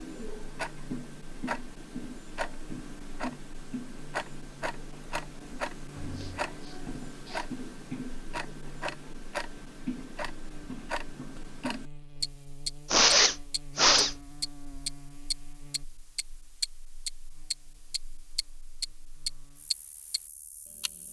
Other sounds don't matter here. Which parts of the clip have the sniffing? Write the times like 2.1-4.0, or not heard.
6.0-7.5, 12.9-14.2.